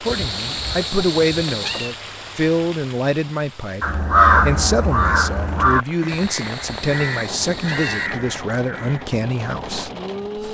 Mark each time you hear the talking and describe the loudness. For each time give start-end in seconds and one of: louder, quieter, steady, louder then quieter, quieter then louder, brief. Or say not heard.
0.0-10.4 steady.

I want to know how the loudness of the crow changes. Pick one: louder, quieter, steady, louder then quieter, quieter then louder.
quieter then louder.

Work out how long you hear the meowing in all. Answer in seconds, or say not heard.
4 s.